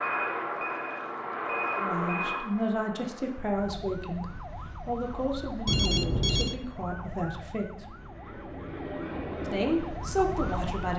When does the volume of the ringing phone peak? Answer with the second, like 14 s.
6 s.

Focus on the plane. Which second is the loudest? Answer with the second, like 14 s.
2 s.